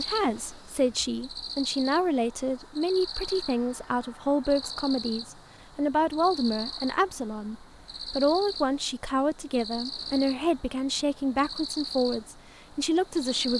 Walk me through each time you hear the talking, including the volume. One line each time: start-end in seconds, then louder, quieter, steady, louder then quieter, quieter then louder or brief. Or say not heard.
0.0-13.5 steady.